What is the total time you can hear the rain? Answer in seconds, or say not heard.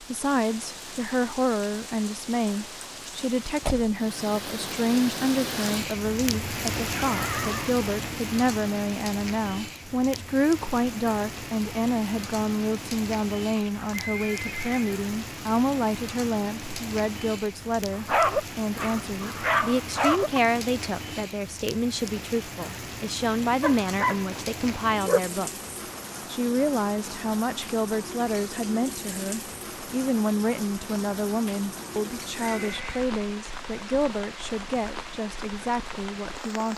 37 s.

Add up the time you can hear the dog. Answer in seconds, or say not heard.
4 s.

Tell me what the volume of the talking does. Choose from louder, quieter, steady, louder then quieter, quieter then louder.
steady.